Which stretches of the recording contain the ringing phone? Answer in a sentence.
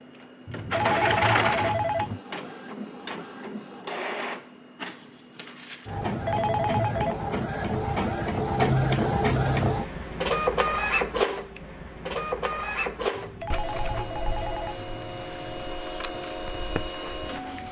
You can hear the ringing phone from 0.5 to 2.2 s, from 6.0 to 7.2 s and from 13.1 to 15.7 s.